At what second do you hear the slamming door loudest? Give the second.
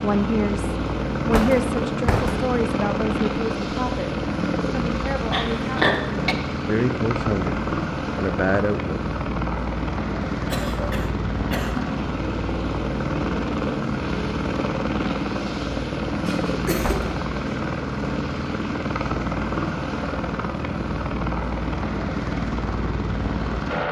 2 s.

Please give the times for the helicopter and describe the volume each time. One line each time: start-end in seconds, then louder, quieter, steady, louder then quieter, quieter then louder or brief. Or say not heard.
0.0-23.8 steady.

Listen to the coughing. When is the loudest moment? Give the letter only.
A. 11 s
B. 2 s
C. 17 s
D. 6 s
D.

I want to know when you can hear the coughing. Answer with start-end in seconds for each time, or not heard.
5.3-6.3, 10.3-11.9, 16.2-17.0.